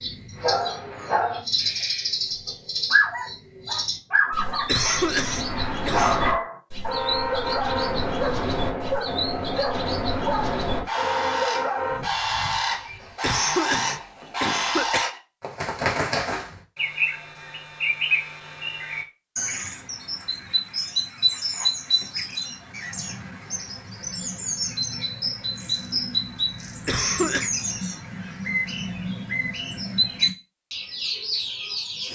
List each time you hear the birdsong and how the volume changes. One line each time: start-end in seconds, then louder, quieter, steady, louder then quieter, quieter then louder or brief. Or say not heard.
0.0-32.0 steady.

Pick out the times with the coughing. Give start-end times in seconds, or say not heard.
4.7-6.2, 13.2-15.2, 26.9-27.5.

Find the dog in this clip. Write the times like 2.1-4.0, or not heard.
0.3-12.1.